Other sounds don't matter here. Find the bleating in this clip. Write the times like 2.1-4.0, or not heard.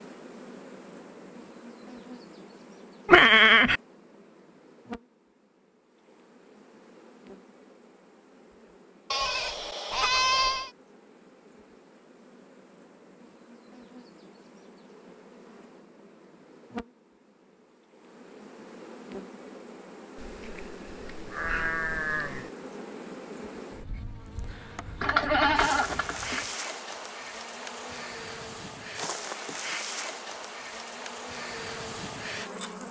3.0-3.8, 9.1-10.7, 20.1-22.5, 25.0-26.4.